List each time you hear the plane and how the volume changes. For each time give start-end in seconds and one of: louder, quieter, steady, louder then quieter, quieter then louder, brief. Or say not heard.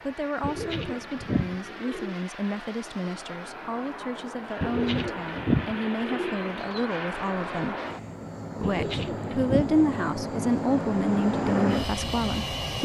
0.0-12.8 louder.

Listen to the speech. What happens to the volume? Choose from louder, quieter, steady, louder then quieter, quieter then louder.
louder.